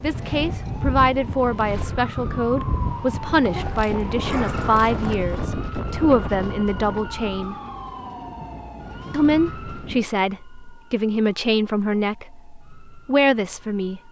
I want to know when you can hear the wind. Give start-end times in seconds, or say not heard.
0.0-10.1.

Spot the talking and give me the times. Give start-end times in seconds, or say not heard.
0.0-7.5, 9.1-14.0.